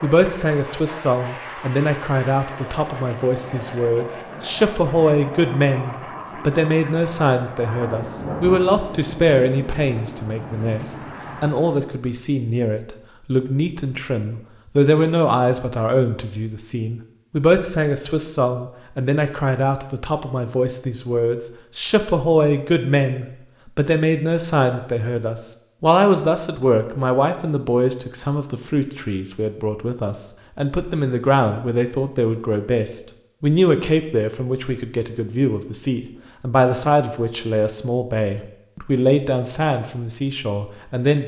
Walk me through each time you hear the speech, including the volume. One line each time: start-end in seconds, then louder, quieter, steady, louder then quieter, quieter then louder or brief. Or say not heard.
0.0-41.2 steady.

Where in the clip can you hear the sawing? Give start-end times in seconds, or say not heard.
not heard.